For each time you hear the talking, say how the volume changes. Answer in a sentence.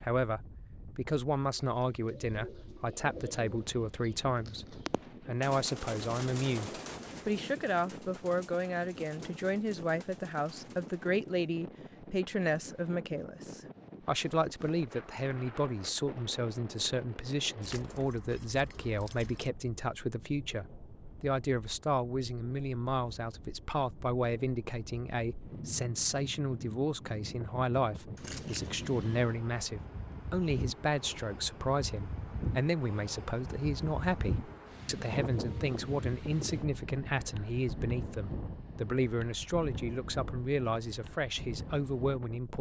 The talking can be heard from 0.0 to 42.5 s, at a steady volume.